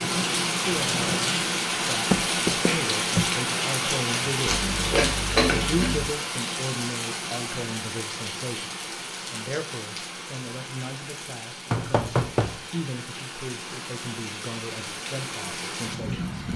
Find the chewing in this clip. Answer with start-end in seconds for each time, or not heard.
4.5-6.0.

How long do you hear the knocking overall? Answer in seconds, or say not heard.
2 s.